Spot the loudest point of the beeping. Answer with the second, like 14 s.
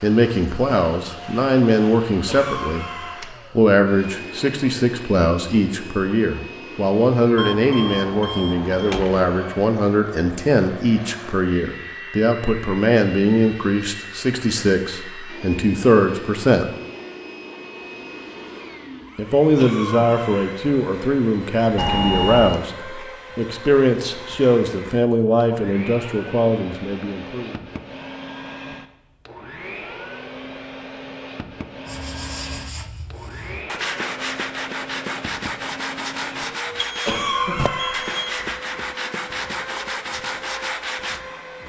22 s.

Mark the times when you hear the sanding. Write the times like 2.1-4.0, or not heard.
31.9-41.2.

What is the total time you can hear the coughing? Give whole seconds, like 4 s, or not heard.
3 s.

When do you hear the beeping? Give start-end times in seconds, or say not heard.
7.3-9.2, 21.8-22.6, 36.6-38.4.